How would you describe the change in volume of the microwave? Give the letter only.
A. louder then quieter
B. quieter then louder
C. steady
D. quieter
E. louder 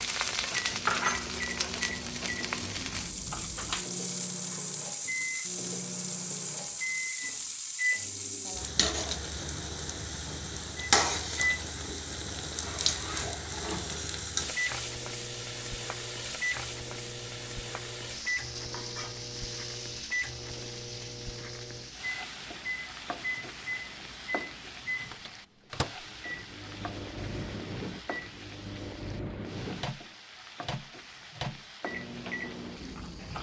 C.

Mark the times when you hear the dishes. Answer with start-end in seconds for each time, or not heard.
not heard.